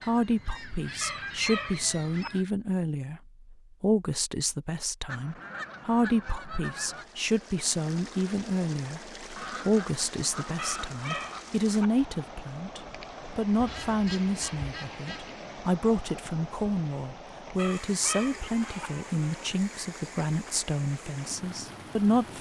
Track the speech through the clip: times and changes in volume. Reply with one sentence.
You can hear the speech from 0.0 to 22.3 s, at a steady volume.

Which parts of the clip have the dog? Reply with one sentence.
You can hear the dog from 1.0 to 2.3 s, from 10.6 to 11.9 s and from 17.6 to 18.9 s.